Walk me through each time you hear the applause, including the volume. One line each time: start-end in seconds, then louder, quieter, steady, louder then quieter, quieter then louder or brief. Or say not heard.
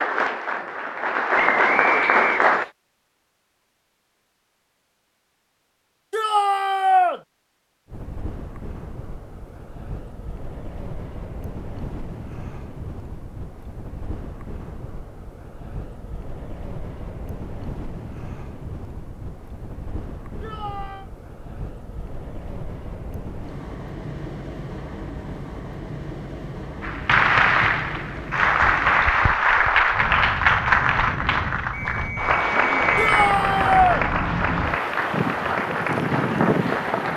0.0-2.6 brief
26.8-37.1 quieter.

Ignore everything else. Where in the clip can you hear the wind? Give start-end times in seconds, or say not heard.
7.8-37.1.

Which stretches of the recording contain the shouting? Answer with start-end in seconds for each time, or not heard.
6.1-7.2, 20.4-21.1, 33.0-34.0.